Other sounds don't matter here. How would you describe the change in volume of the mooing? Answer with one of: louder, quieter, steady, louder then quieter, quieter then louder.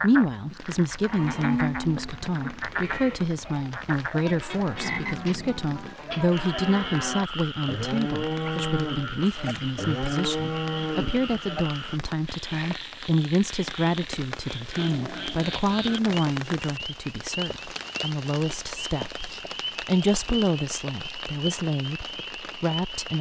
quieter then louder.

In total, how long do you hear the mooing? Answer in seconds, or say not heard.
11 s.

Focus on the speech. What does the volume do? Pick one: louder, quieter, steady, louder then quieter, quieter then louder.
steady.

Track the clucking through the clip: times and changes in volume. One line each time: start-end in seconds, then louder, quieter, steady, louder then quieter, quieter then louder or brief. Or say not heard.
not heard.